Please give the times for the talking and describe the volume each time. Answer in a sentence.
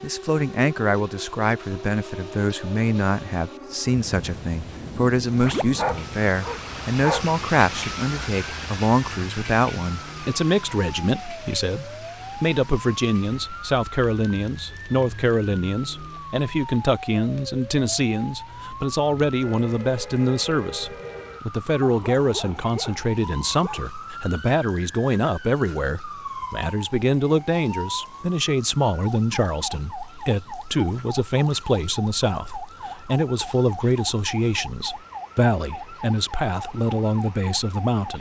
The talking can be heard from 0.0 to 38.1 s, at a steady volume.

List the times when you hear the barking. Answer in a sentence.
You can hear the barking from 5.4 to 7.3 s and from 21.8 to 23.9 s.